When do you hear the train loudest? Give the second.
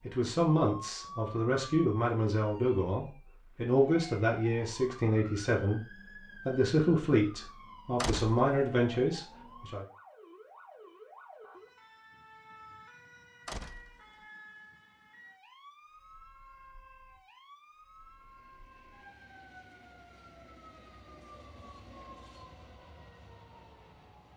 22 s.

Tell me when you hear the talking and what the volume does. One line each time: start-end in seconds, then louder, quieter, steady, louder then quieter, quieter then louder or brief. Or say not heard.
0.0-9.8 steady.